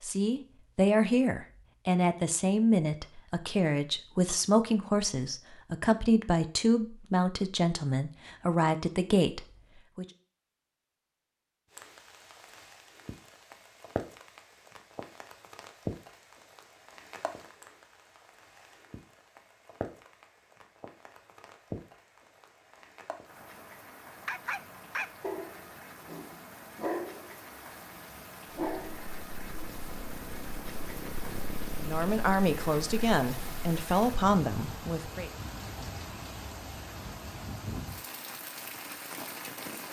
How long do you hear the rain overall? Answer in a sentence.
You can hear the rain for 28 seconds altogether.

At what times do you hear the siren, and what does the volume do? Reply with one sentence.
You can't hear the siren here.